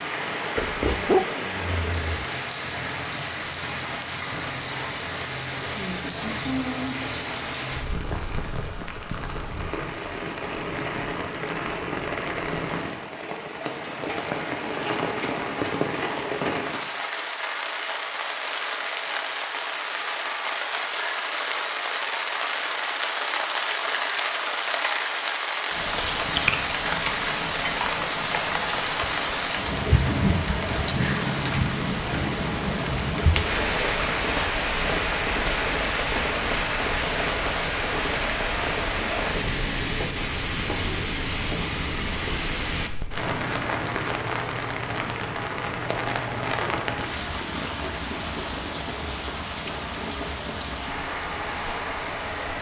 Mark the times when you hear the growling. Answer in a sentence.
You can hear the growling from 0.6 to 2.2 s.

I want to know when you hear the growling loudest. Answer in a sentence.
The volume of the growling peaks at 1 second.